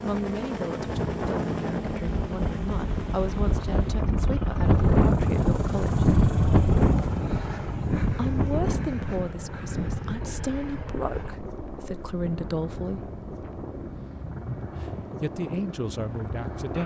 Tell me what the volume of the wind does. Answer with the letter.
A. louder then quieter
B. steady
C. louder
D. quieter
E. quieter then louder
A.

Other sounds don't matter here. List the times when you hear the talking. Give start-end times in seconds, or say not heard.
0.0-6.0, 8.1-13.1, 14.7-16.8.